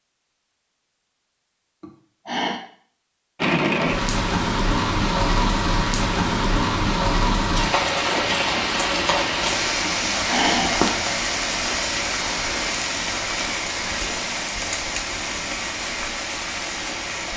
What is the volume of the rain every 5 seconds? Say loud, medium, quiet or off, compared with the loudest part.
loud, loud, loud, medium.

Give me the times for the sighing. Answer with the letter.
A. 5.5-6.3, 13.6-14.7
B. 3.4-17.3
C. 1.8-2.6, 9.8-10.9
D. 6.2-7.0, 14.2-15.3
C.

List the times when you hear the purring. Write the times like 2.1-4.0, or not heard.
not heard.